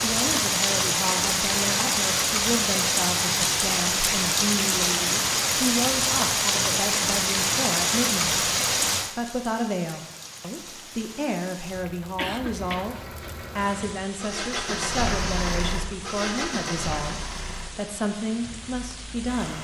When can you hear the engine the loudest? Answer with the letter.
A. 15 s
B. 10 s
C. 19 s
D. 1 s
A.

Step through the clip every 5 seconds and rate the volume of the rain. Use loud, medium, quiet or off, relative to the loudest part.
loud, loud, quiet, quiet.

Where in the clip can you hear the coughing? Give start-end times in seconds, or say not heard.
12.2-13.3.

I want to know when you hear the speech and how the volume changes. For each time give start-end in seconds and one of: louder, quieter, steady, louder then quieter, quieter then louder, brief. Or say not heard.
0.0-8.5 steady
9.1-19.5 steady.